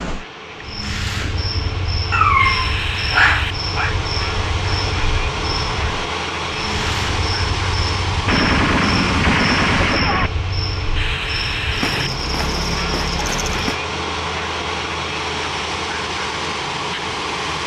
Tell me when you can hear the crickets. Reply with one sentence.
The crickets can be heard from 0.0 to 13.8 s.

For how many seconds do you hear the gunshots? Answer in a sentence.
You can hear the gunshots for 2 seconds altogether.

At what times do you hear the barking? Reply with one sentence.
The barking can be heard from 2.1 to 4.0 s.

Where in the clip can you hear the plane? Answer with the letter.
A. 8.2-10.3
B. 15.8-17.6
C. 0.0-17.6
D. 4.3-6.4
C.